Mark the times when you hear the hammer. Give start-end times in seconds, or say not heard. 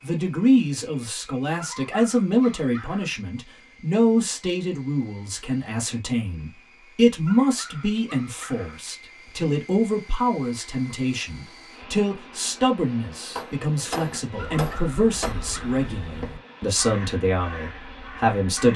13.3-15.3.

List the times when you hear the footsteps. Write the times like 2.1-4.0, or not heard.
not heard.